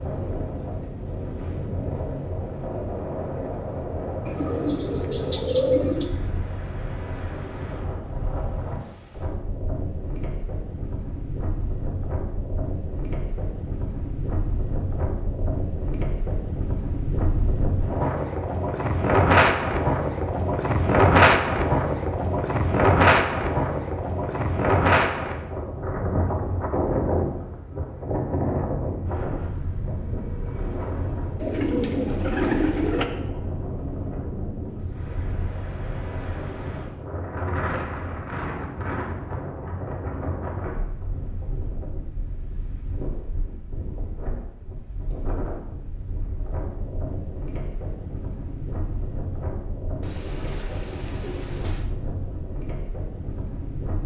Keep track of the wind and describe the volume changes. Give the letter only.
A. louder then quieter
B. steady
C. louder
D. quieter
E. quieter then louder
A.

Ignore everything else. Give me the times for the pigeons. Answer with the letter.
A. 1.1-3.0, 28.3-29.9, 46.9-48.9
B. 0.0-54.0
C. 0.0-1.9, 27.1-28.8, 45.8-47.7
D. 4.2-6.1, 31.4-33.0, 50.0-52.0
D.